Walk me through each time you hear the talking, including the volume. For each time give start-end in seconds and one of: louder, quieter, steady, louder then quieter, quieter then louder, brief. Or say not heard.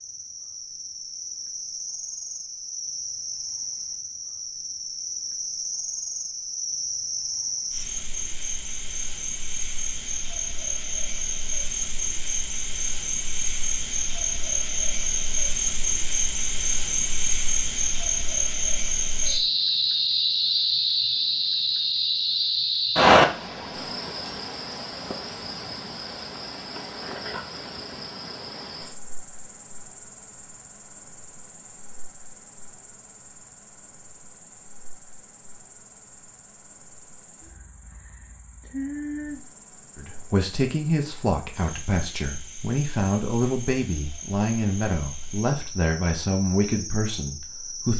40.0-47.9 steady.